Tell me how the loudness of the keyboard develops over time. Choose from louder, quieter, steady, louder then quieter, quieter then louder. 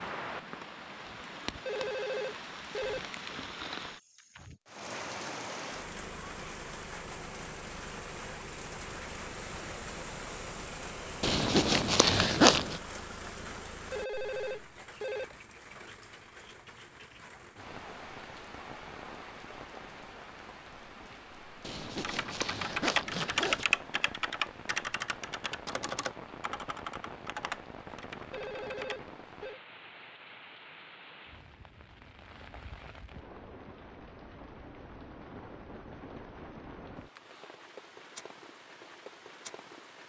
quieter.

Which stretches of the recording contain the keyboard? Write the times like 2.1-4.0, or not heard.
21.9-29.0.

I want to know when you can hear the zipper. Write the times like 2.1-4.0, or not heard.
11.2-12.8, 21.6-23.6.